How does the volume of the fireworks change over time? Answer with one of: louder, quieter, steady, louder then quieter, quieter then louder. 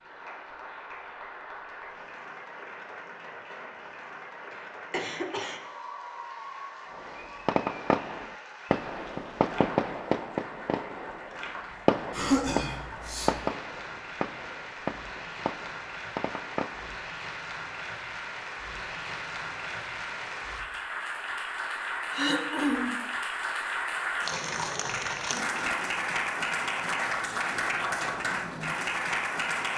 quieter.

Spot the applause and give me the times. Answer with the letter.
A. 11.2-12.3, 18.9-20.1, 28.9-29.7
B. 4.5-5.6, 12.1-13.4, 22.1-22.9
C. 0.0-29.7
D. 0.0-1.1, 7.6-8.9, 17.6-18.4
C.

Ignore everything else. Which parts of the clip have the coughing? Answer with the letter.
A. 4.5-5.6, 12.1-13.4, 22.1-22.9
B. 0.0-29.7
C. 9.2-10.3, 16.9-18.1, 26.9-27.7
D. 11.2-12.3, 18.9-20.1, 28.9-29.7
A.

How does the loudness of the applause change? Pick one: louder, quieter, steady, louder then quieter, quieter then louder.
louder.